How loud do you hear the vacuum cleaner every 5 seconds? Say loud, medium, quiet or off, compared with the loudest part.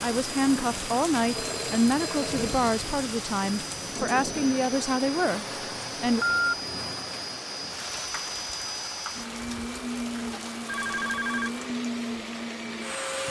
medium, loud, loud.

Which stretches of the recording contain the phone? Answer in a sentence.
The phone can be heard from 1.4 to 2.6 s, from 6.0 to 6.5 s and from 10.7 to 11.5 s.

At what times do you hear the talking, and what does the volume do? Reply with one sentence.
The talking can be heard from 0.0 to 6.2 s, at a steady volume.